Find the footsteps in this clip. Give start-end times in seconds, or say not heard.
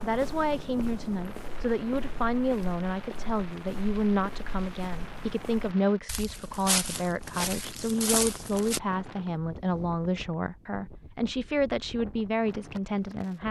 0.0-8.8.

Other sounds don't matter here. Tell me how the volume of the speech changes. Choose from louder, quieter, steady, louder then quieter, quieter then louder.
steady.